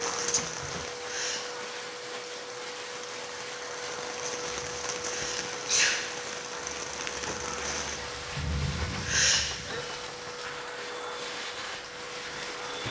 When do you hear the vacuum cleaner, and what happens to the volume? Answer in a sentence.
You can hear the vacuum cleaner from 0.0 to 12.8 s, at a steady volume.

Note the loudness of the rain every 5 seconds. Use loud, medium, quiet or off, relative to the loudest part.
loud, loud, medium.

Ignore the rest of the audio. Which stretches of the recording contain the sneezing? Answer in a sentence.
You can hear the sneezing from 0.6 to 1.4 s, from 4.6 to 6.0 s and from 8.6 to 9.4 s.